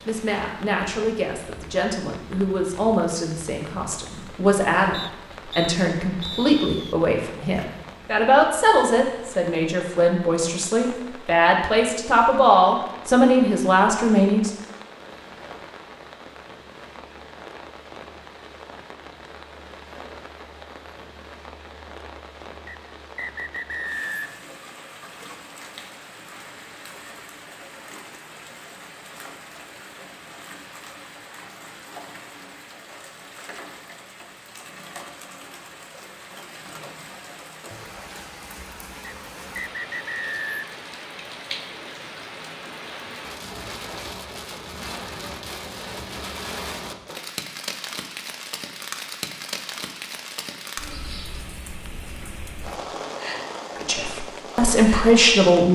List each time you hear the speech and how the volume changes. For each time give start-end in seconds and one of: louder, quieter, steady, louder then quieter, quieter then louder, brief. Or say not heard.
0.1-14.5 louder
53.8-55.6 brief.